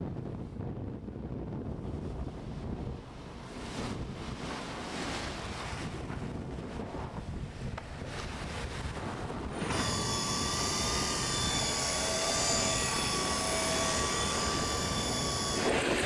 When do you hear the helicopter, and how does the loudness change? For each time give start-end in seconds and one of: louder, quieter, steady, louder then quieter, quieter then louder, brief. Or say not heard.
9.5-16.0 steady.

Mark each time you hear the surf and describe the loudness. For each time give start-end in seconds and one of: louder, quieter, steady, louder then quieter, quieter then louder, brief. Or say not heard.
0.0-16.0 steady.